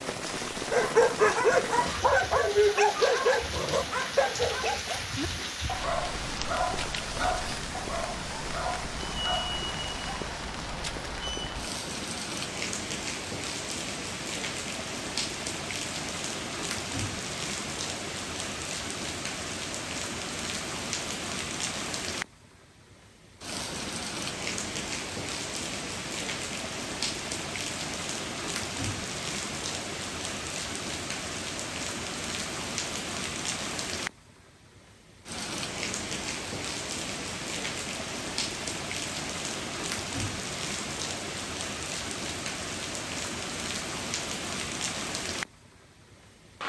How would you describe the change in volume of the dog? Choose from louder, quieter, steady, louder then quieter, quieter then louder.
quieter.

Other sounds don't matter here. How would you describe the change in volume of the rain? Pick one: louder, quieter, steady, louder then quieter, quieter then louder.
steady.